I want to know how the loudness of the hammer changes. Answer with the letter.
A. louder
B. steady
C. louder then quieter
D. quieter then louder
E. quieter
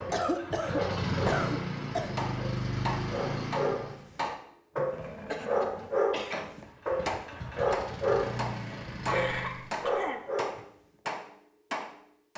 D.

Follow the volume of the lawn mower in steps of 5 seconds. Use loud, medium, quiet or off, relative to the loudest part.
loud, medium, off.